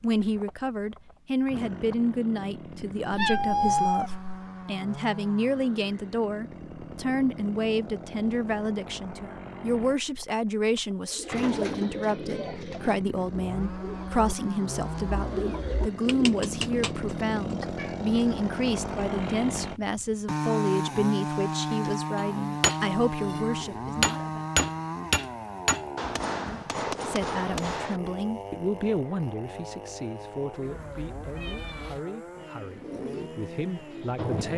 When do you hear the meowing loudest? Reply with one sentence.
The volume of the meowing peaks at 4 seconds.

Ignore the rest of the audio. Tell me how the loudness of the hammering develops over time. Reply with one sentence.
The volume of the hammering goes up, then down.